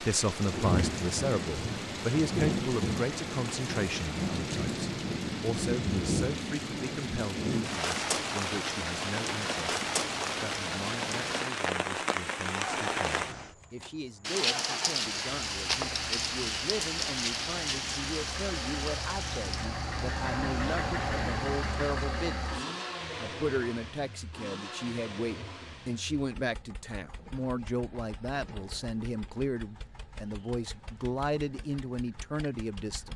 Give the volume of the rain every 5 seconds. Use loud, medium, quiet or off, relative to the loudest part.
loud, loud, loud, loud, quiet, off, off.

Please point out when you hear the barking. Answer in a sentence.
You can't hear the barking here.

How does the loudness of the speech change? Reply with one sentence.
The loudness of the speech goes down, then up.